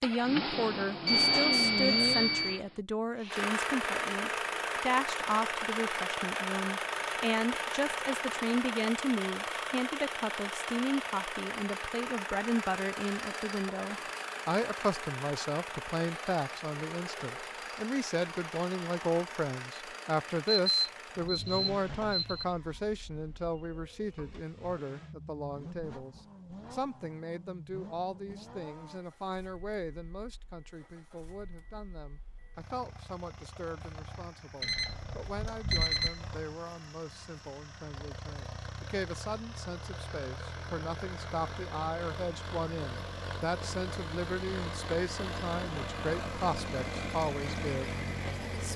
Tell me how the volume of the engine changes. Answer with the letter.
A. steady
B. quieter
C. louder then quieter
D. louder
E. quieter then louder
E.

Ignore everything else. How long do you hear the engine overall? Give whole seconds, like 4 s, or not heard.
49 s.